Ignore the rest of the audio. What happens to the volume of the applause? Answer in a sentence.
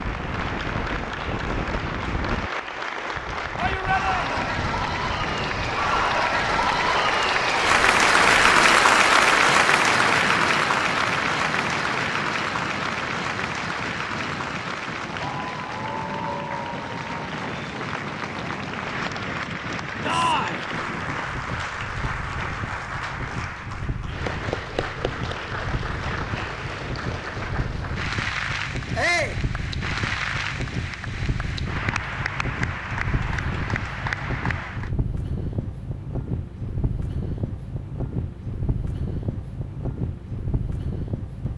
The volume of the applause goes up, then down.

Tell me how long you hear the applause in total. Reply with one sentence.
You can hear the applause for 35 seconds altogether.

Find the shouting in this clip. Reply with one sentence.
The shouting can be heard from 3.5 to 4.4 s, from 20.1 to 20.6 s and from 28.9 to 29.4 s.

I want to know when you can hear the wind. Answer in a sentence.
The wind can be heard from 0.0 to 41.5 s.